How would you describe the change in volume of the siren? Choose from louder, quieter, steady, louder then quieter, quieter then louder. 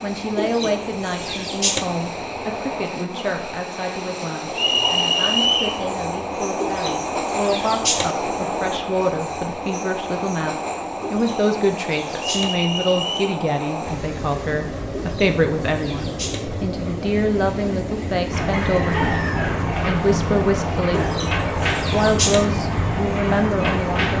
steady.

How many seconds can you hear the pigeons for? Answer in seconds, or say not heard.
8 s.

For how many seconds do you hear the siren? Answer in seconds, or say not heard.
6 s.